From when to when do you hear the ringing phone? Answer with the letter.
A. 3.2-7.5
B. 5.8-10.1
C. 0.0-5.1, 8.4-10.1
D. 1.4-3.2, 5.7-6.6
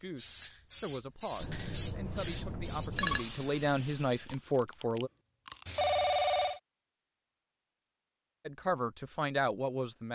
D.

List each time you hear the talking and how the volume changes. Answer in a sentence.
The talking can be heard from 0.0 to 5.1 s, getting louder; and briefly from 8.4 to 10.1 s.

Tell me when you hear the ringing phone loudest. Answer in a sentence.
The loudest moment of the ringing phone is at 6 seconds.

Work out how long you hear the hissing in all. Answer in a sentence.
You can hear the hissing for 4 seconds altogether.